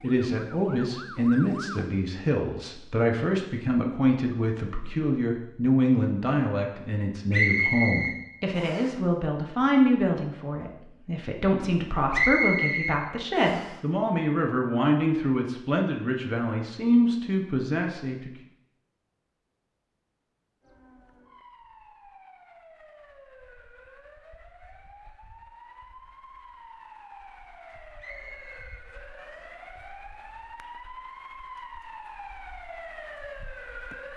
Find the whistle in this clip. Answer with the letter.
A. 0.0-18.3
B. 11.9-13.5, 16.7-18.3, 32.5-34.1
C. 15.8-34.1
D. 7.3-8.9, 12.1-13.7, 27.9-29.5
D.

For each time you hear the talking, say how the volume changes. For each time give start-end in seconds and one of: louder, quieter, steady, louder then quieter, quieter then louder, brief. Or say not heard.
0.0-18.3 steady.